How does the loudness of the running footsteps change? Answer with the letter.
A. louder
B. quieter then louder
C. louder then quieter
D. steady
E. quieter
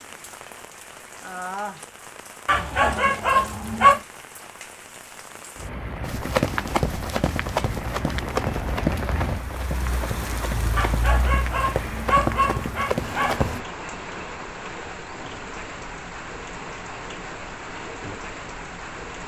B.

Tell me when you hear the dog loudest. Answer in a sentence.
The volume of the dog peaks at 4 seconds.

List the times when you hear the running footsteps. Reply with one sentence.
The running footsteps can be heard from 6.0 to 13.6 s.